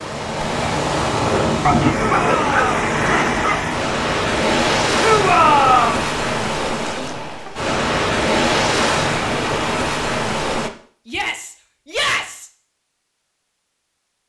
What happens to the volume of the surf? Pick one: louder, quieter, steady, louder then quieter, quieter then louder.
steady.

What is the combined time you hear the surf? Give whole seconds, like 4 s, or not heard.
11 s.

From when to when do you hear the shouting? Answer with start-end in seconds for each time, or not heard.
2.0-2.7, 5.0-6.0, 11.1-12.5.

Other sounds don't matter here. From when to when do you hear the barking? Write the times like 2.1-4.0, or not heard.
1.6-3.6.